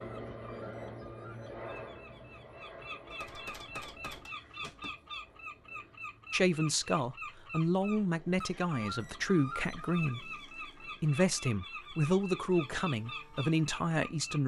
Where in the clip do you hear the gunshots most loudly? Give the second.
4 s.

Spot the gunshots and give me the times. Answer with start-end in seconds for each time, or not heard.
3.1-5.0.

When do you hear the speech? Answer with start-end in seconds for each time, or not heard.
6.3-14.4.